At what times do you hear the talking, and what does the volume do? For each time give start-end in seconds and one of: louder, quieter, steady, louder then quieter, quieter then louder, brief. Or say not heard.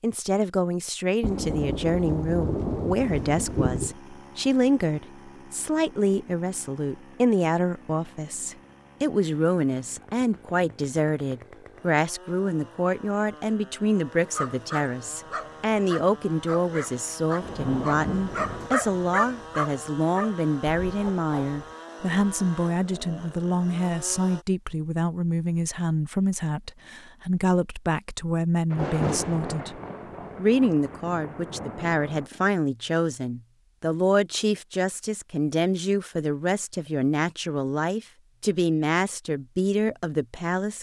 0.0-40.7 steady.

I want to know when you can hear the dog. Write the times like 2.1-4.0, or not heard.
14.3-21.6.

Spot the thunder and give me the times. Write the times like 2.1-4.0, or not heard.
1.2-4.0, 17.4-18.7, 28.7-32.2.